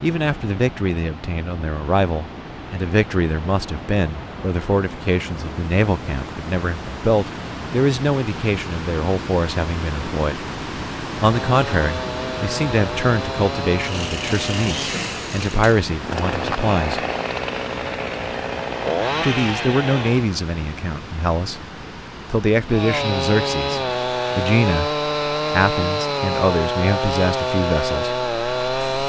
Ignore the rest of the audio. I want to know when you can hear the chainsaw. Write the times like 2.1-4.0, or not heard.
11.2-20.3, 22.7-29.0.